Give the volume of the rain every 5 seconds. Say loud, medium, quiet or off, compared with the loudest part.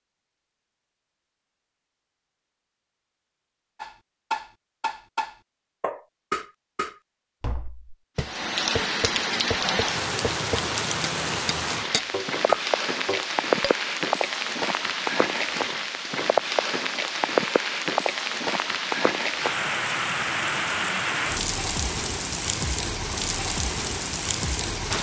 off, loud, loud, loud, loud.